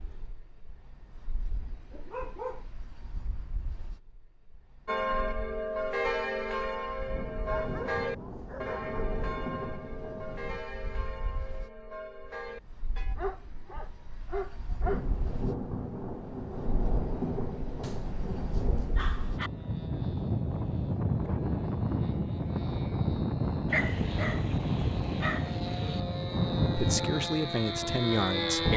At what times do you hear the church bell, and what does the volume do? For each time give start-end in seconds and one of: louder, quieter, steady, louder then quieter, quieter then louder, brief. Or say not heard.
4.8-13.2 quieter.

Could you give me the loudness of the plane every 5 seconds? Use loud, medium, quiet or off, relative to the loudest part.
quiet, quiet, quiet, quiet, loud, loud.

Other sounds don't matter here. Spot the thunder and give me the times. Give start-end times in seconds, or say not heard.
7.0-10.7, 14.8-19.4.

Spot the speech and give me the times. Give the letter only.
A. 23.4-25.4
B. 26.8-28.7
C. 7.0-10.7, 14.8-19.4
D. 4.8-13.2
B.